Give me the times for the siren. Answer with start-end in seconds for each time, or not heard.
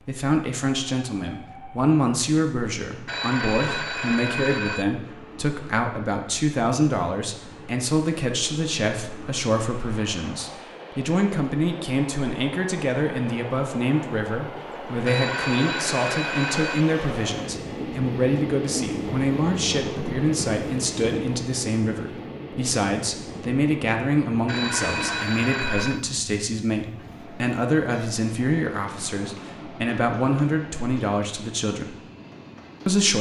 not heard.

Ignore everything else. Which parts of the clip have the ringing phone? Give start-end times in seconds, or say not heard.
3.0-4.8, 15.1-16.9, 24.4-26.1.